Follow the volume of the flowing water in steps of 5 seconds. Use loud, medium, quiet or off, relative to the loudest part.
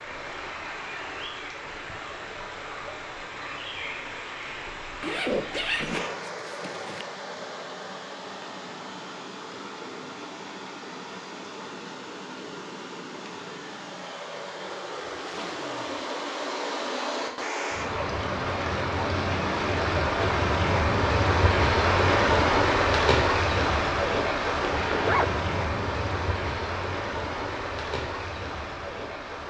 quiet, quiet, quiet, medium, loud, medium.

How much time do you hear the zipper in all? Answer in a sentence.
You can hear the zipper for 3 seconds altogether.